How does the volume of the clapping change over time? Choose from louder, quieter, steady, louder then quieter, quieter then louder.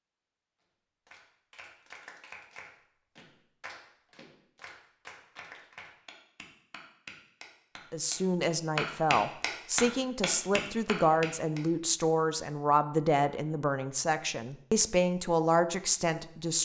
louder.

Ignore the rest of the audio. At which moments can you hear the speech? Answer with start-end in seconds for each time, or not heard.
7.9-16.5.